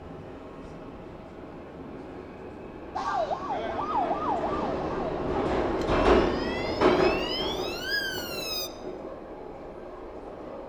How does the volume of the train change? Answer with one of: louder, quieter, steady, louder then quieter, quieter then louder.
louder then quieter.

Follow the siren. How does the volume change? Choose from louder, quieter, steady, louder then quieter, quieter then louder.
quieter then louder.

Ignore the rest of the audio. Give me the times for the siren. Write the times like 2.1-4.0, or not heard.
3.0-8.7.